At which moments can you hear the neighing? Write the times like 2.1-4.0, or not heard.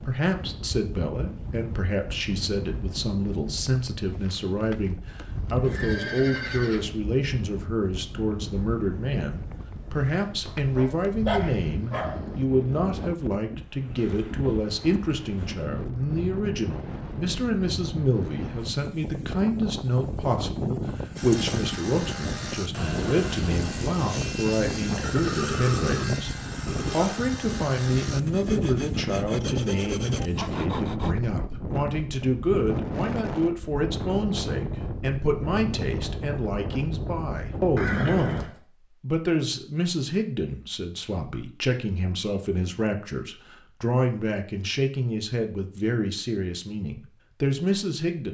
5.6-7.0, 24.9-27.2, 37.8-38.5.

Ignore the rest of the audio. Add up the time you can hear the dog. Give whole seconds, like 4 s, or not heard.
2 s.